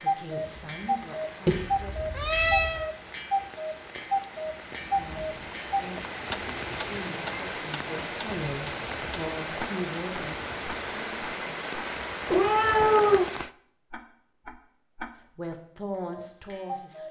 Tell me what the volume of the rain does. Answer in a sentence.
The loudness of the rain goes up.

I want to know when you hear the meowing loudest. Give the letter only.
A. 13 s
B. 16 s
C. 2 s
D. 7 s
A.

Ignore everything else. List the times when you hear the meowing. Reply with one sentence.
You can hear the meowing from 1.4 to 2.9 s, from 6.5 to 7.5 s and from 12.2 to 13.2 s.